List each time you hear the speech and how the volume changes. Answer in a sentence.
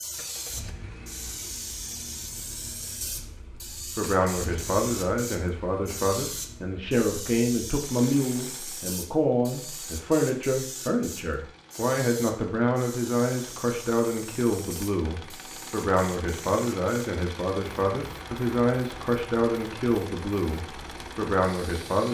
You can hear the speech from 4.0 to 22.0 s, at a steady volume.